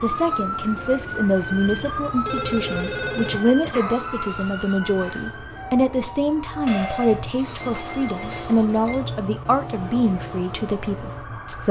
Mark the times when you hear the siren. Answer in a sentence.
The siren can be heard from 0.0 to 11.6 s.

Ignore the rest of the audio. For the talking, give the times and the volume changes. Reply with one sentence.
The talking can be heard from 0.0 to 11.6 s, at a steady volume.